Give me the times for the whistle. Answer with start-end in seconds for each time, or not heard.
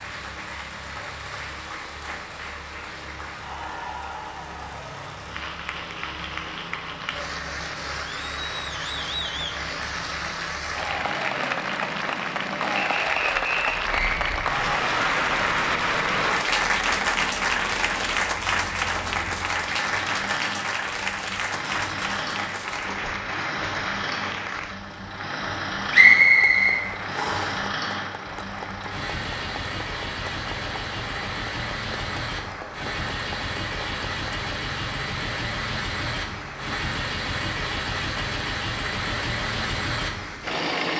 12.8-14.2, 25.9-27.6.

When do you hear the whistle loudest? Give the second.
26 s.